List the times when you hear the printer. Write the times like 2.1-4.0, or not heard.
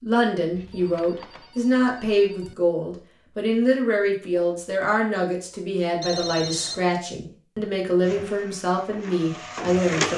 8.0-10.1.